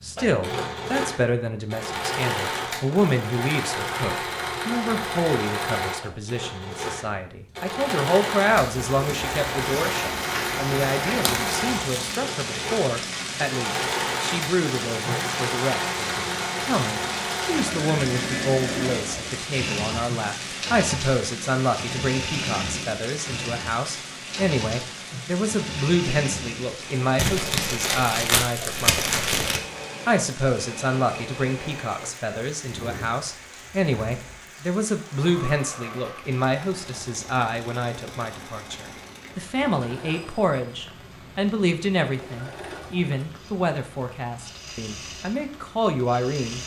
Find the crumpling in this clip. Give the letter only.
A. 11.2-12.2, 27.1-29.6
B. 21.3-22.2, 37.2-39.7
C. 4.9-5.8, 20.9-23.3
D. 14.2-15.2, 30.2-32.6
A.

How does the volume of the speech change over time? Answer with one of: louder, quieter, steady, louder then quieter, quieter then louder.
steady.